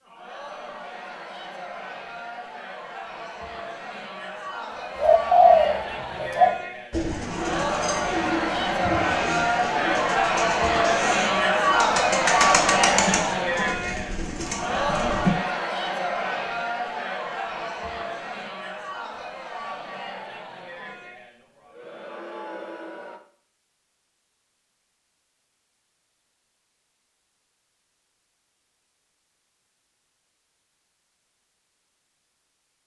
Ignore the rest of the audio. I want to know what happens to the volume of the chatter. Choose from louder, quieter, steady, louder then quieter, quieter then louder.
louder then quieter.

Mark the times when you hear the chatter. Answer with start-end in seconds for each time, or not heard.
0.0-23.2.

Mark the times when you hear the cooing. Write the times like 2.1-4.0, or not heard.
5.0-15.3.